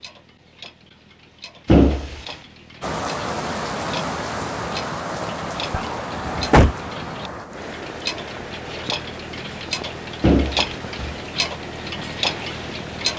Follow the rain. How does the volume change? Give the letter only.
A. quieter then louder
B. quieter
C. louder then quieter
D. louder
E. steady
B.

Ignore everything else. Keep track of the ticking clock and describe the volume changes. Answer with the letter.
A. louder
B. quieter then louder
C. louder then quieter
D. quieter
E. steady
A.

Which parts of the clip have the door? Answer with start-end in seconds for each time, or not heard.
1.6-2.1, 5.7-6.8, 10.2-11.2.